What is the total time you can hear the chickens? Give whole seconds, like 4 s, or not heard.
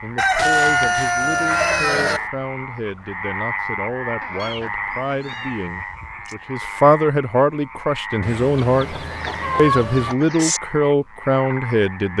5 s.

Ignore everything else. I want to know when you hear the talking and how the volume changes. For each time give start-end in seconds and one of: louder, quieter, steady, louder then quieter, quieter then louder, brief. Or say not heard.
0.0-12.1 louder.